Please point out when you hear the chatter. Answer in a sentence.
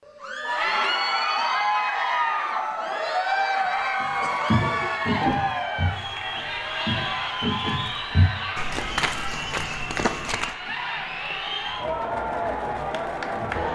You can hear the chatter from 0.1 to 13.7 s.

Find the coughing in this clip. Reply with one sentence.
You can hear the coughing from 3.6 to 5.5 s.